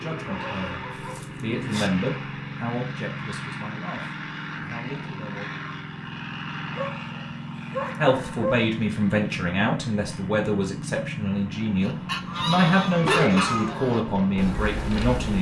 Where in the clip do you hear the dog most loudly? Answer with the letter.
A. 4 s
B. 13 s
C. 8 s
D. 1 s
B.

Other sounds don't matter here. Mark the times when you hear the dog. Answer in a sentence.
You can hear the dog from 0.2 to 1.9 s, from 6.8 to 8.7 s and from 13.0 to 13.6 s.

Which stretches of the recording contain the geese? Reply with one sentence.
The geese can be heard from 11.8 to 15.3 s.